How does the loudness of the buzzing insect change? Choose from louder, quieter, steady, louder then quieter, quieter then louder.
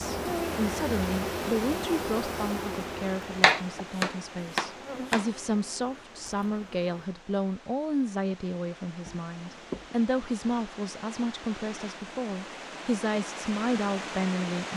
quieter.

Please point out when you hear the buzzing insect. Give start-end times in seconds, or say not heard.
0.0-7.1.